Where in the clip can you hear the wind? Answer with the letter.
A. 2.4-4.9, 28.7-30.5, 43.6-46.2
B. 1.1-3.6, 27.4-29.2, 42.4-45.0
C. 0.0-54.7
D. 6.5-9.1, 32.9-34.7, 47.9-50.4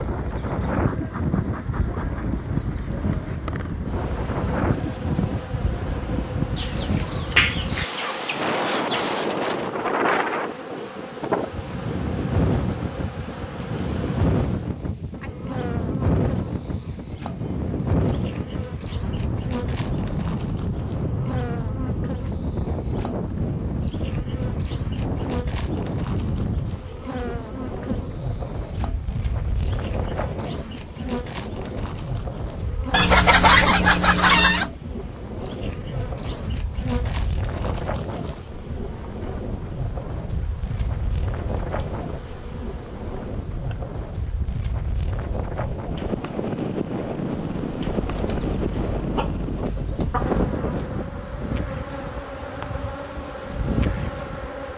C.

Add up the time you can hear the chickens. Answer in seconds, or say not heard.
7 s.